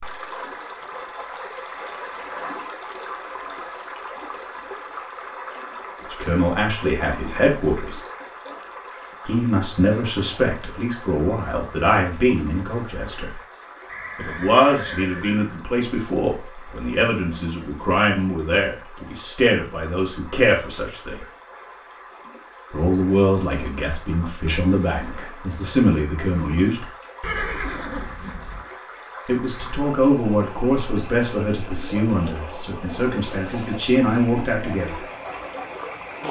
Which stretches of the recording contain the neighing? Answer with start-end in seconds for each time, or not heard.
1.9-2.7, 13.8-15.7, 27.2-28.6.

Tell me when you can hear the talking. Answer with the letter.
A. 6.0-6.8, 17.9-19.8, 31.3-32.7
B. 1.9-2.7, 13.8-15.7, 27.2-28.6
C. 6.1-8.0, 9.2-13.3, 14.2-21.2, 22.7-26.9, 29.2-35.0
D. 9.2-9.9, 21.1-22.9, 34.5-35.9
C.